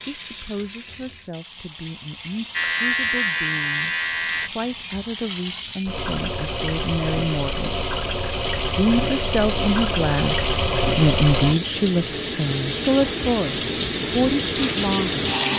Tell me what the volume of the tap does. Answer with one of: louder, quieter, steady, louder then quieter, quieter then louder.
louder.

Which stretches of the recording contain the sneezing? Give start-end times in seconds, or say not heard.
not heard.